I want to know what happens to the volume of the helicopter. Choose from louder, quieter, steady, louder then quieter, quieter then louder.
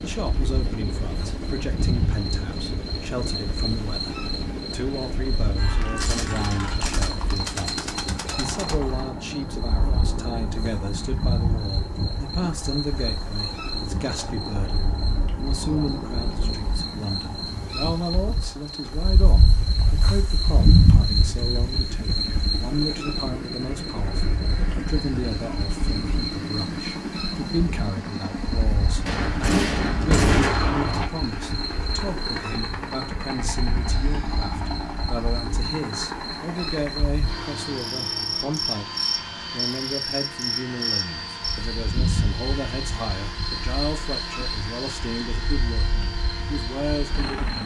steady.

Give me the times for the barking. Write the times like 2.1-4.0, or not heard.
not heard.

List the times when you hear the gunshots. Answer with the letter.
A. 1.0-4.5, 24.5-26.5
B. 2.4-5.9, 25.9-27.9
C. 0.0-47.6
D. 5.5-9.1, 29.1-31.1
D.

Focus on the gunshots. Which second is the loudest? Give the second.
30 s.